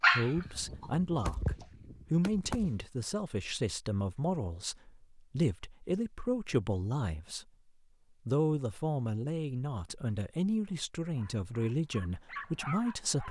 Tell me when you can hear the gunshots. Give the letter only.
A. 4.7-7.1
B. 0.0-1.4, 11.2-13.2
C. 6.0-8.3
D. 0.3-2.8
D.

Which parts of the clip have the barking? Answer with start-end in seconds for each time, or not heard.
0.0-1.4, 11.2-13.2.